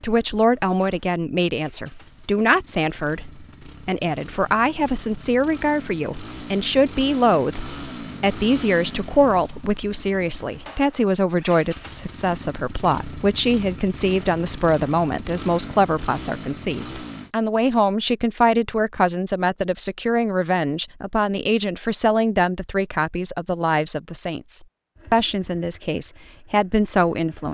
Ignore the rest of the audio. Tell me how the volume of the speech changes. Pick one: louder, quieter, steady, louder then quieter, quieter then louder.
steady.